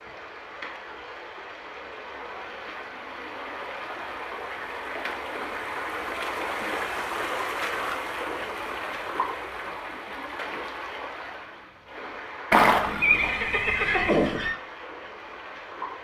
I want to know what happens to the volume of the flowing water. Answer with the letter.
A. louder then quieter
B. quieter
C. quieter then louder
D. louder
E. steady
A.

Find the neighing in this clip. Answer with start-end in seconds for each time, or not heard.
12.5-14.6.